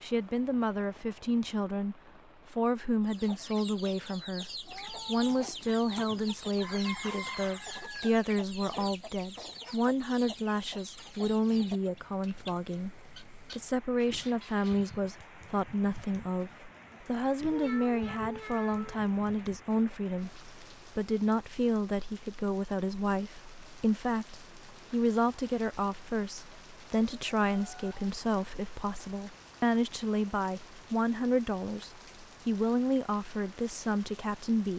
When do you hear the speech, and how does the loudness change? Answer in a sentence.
The speech can be heard from 0.0 to 34.7 s, at a steady volume.